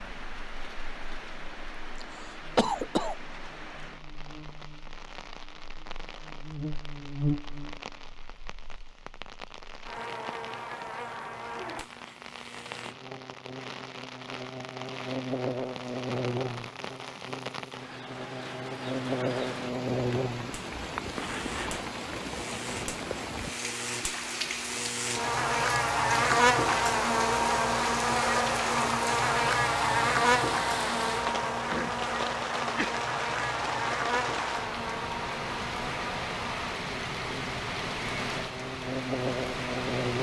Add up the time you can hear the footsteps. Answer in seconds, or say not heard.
not heard.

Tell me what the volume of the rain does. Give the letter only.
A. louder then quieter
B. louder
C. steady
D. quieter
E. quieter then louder
B.